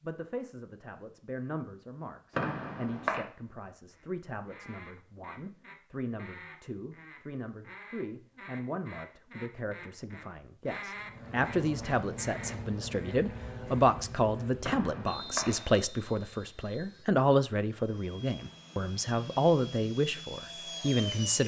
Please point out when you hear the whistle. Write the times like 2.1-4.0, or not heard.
2.3-3.2, 14.6-15.8.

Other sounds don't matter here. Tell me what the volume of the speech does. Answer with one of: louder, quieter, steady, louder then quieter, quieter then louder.
louder.